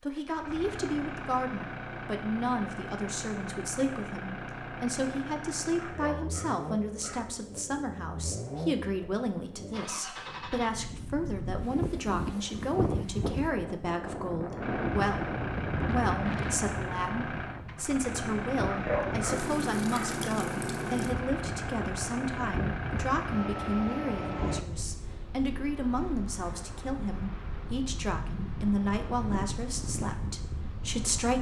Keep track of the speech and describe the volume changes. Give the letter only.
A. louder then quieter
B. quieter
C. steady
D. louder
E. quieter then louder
C.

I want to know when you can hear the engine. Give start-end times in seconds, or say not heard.
0.0-10.7, 14.6-24.6.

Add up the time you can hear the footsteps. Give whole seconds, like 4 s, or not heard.
not heard.